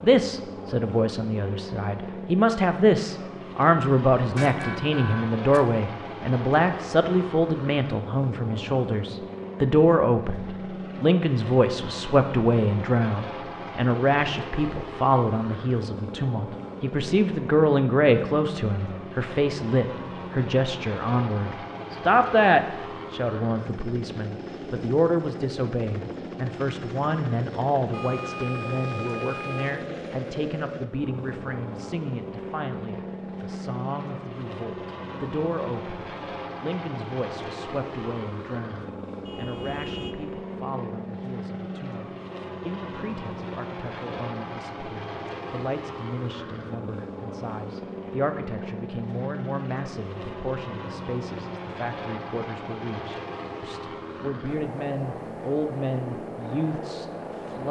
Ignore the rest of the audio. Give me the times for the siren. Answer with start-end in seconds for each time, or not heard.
not heard.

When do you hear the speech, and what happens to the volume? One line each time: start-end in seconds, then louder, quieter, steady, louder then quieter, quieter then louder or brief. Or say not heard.
0.0-57.6 quieter.